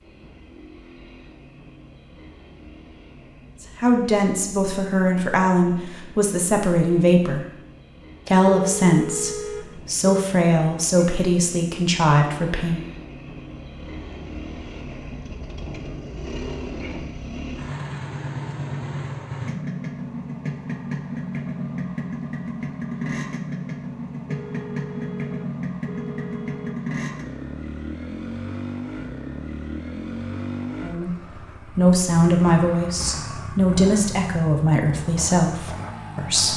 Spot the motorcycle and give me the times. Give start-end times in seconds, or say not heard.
0.0-36.5.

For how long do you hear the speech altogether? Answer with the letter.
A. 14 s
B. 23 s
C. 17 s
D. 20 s
A.